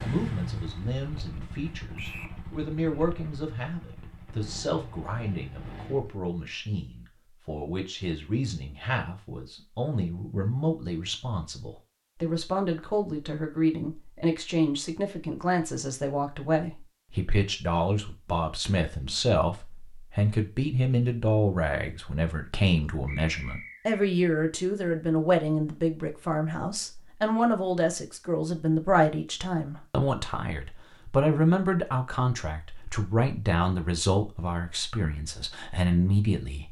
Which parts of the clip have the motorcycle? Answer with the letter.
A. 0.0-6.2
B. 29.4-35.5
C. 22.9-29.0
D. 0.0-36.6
A.